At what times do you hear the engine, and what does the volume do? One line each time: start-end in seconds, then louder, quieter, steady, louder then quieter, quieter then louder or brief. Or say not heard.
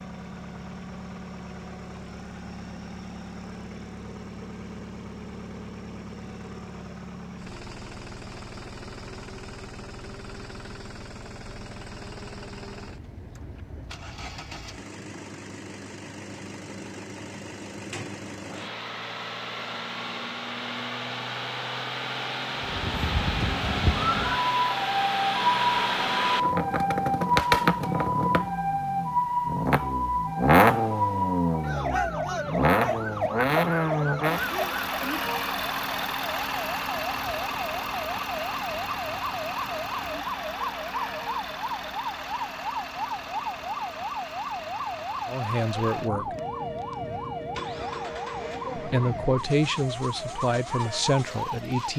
0.0-51.9 louder then quieter.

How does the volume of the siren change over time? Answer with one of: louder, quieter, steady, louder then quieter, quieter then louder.
quieter.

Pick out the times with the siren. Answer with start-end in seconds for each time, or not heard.
22.6-51.9.